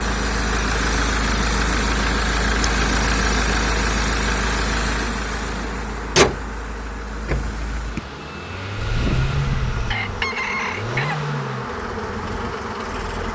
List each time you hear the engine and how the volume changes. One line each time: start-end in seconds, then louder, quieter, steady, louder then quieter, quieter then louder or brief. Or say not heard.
0.0-13.3 quieter.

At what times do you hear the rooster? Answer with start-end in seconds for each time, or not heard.
8.8-11.3.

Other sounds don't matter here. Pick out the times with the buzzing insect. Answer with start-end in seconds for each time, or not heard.
0.0-13.3.